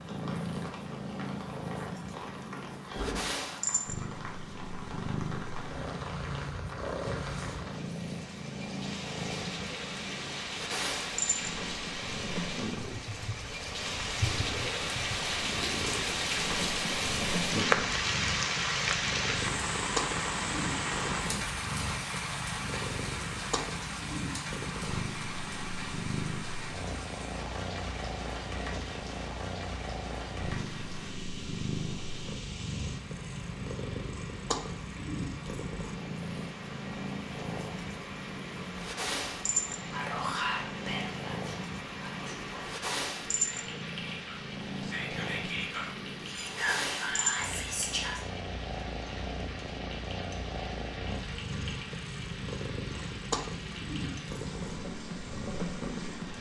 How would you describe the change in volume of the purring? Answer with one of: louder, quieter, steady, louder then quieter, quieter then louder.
steady.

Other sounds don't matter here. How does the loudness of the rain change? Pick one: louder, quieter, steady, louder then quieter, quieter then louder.
louder then quieter.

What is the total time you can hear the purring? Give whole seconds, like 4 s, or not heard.
56 s.